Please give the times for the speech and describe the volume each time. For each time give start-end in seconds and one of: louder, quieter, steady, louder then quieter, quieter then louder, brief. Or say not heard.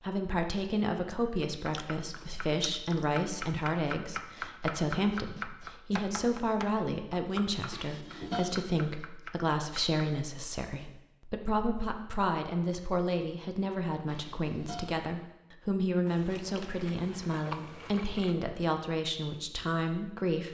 0.0-20.4 steady.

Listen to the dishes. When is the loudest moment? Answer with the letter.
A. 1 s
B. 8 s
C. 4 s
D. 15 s
B.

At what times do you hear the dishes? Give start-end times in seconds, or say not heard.
7.7-8.7, 14.1-15.0.